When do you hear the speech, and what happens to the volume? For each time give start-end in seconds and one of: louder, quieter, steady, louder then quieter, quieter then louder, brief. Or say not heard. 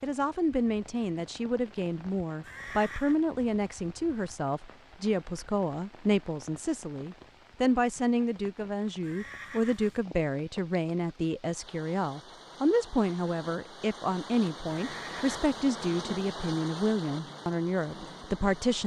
0.0-18.8 steady.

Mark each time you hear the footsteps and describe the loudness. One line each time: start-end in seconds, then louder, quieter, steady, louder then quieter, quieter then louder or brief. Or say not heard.
not heard.